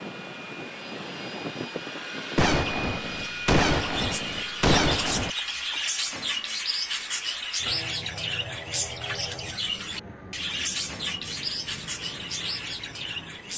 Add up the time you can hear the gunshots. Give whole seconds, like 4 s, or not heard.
3 s.